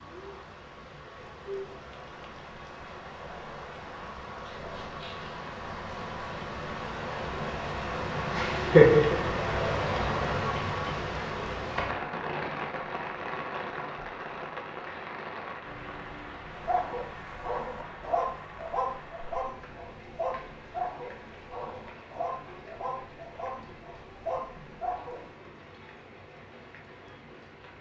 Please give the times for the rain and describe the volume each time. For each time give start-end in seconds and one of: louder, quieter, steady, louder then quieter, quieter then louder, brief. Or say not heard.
0.0-27.7 louder then quieter.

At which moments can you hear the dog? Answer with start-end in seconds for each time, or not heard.
16.5-25.4.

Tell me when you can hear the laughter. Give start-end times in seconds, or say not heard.
8.3-9.2.